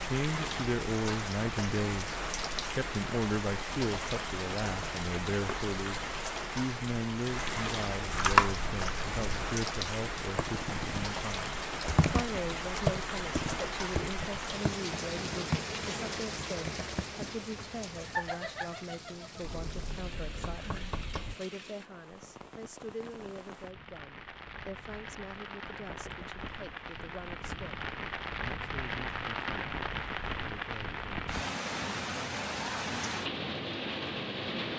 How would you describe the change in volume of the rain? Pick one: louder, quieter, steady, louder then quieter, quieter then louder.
quieter then louder.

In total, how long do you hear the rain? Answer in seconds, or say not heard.
35 s.